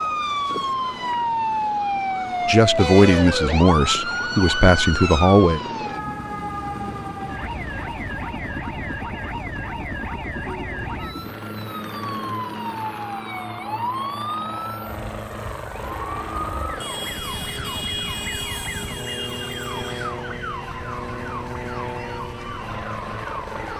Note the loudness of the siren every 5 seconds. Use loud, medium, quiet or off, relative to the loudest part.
loud, medium, medium, medium, medium.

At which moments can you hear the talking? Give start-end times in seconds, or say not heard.
2.5-5.6.